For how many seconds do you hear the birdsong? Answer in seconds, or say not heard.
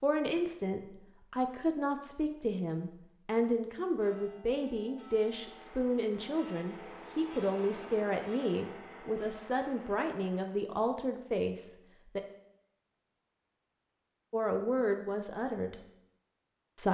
not heard.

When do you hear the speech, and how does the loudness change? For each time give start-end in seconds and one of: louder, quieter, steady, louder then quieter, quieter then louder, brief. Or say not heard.
0.0-12.2 steady
14.3-15.8 brief.